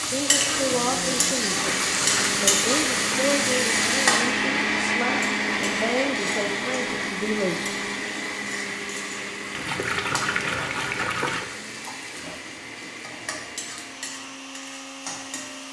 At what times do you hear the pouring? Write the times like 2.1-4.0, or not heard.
1.6-3.5, 9.5-11.5.